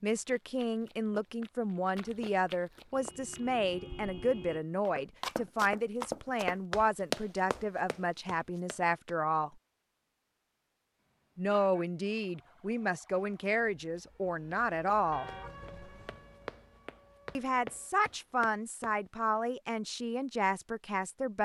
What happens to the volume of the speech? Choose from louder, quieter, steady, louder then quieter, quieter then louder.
steady.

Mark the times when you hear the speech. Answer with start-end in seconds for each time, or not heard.
0.0-9.5, 11.3-15.3, 17.4-21.4.